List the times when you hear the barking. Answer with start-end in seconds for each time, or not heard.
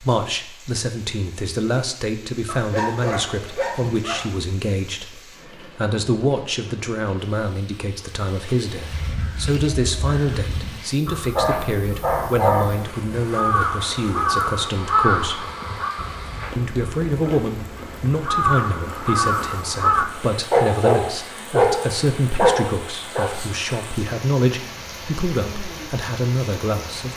2.5-4.2, 11.3-12.8, 20.5-23.3.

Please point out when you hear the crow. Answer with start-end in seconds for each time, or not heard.
8.8-20.1.